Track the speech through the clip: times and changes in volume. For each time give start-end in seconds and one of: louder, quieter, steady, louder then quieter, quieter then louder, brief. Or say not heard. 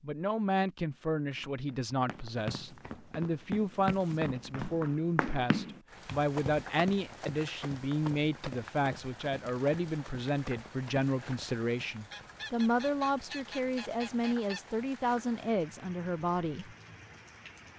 0.0-16.8 steady.